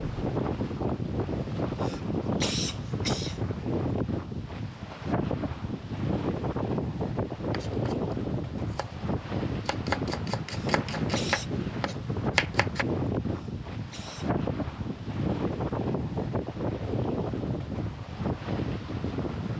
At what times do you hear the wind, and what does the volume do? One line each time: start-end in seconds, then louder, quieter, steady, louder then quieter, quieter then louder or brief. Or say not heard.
0.0-19.5 steady.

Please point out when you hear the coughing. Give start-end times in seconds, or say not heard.
1.8-3.4, 10.5-11.5, 13.3-14.3.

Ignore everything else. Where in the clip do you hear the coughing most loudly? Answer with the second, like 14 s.
3 s.